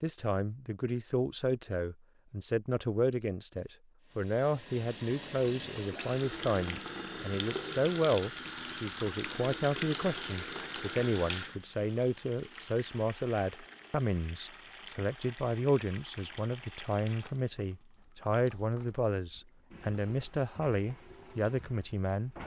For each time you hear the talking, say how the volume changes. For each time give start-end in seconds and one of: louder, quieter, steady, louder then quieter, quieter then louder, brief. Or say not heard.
0.0-22.4 steady.